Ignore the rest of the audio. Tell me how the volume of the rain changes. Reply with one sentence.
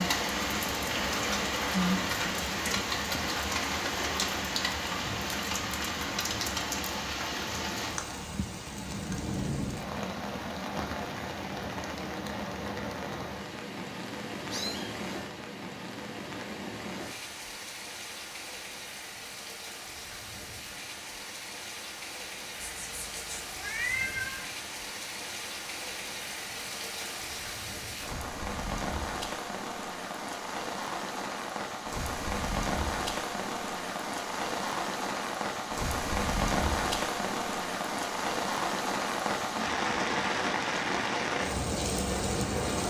The loudness of the rain goes down, then up.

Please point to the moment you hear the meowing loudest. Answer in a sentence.
The loudest moment of the meowing is at 24 seconds.